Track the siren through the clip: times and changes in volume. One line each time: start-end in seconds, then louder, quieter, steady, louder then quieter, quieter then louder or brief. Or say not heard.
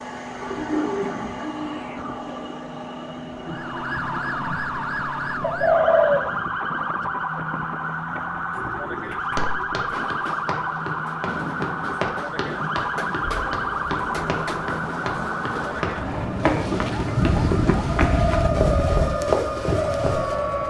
3.5-20.6 steady.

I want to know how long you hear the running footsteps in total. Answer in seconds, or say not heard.
11 s.